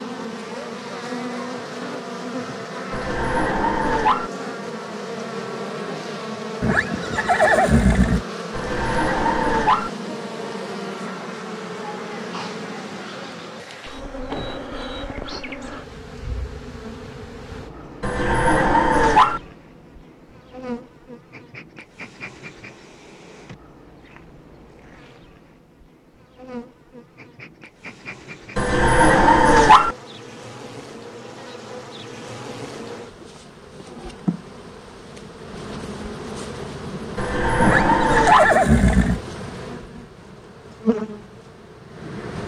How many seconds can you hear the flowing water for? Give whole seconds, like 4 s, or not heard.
not heard.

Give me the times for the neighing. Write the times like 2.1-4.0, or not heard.
6.6-8.2, 37.6-39.2.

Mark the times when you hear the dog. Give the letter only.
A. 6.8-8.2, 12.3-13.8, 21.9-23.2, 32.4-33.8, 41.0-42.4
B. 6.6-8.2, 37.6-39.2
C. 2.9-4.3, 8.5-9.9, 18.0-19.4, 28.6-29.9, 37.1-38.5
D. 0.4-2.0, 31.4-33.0
C.